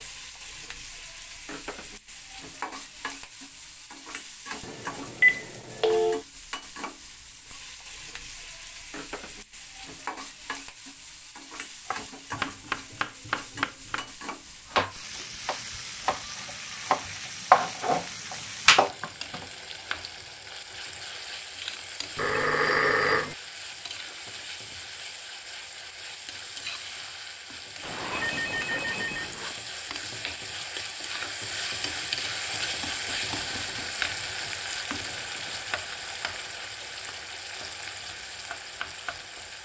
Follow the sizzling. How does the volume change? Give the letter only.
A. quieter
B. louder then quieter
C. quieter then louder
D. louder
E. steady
D.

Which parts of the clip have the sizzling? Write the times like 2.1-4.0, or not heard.
0.0-39.6.